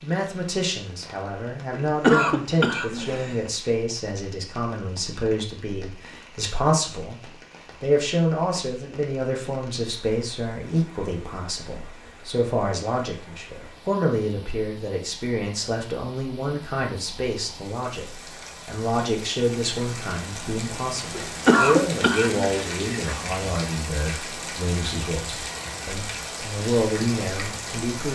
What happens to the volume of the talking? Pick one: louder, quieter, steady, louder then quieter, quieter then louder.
steady.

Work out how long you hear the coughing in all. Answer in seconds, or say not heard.
4 s.